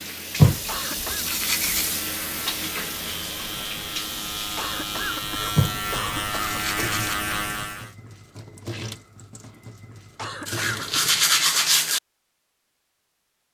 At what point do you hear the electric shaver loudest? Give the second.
7 s.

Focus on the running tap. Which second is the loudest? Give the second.
2 s.